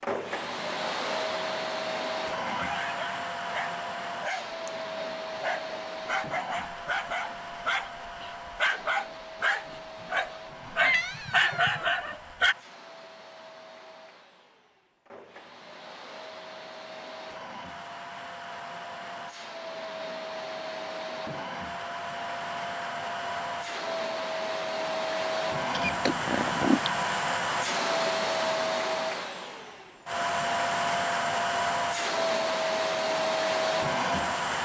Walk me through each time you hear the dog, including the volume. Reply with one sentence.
You can hear the dog from 2.5 to 12.6 s, getting louder.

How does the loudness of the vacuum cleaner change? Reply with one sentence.
The loudness of the vacuum cleaner goes down, then up.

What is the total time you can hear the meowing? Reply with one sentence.
The meowing can be heard for 2 seconds in total.